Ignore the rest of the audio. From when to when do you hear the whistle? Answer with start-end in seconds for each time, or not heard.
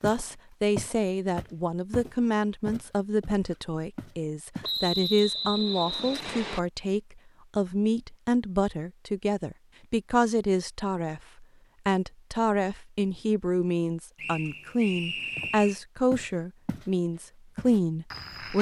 4.6-6.6, 14.2-15.8.